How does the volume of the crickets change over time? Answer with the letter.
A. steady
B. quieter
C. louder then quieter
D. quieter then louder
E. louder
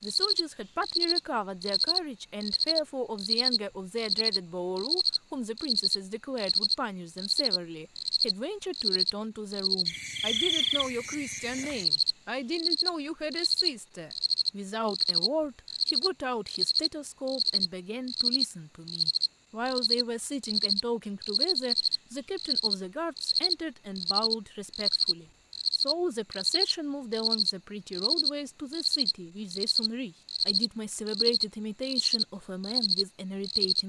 A.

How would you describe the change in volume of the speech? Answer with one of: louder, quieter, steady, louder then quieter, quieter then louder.
steady.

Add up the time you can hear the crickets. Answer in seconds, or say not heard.
34 s.